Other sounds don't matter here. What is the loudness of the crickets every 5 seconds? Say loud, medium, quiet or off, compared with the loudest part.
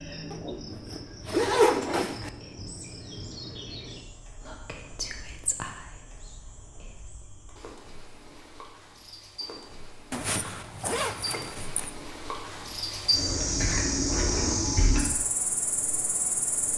quiet, quiet, loud, loud.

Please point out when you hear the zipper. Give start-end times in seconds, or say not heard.
0.3-2.3, 10.1-11.9.